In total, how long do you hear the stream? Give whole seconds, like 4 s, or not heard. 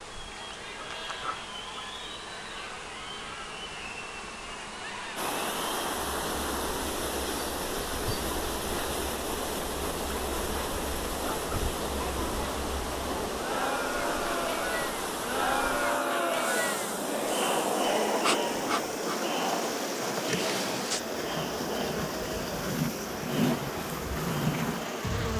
20 s.